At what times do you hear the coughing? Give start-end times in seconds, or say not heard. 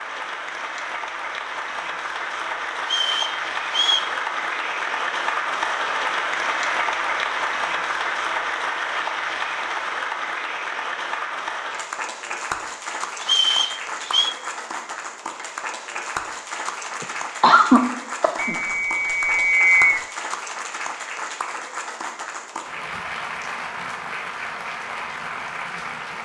17.0-18.6.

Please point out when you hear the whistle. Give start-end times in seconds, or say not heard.
2.9-4.1, 13.2-14.3, 18.4-20.1.